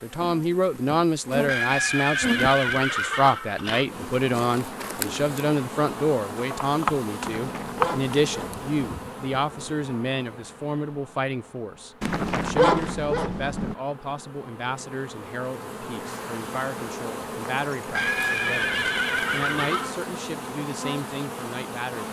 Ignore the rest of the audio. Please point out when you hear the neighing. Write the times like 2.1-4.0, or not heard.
1.4-3.9, 17.9-19.9.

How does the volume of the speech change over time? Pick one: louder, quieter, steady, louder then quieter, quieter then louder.
quieter.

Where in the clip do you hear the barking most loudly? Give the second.
13 s.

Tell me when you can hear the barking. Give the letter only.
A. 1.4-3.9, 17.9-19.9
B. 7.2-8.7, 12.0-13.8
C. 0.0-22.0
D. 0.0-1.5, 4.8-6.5
B.